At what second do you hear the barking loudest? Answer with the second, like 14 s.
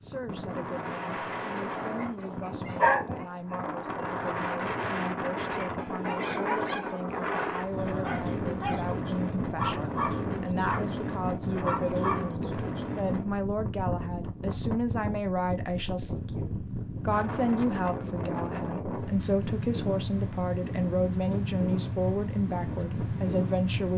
3 s.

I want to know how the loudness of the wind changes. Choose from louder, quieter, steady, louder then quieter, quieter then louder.
steady.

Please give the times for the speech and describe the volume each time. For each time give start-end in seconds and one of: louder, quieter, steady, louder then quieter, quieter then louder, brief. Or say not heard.
0.0-23.9 louder.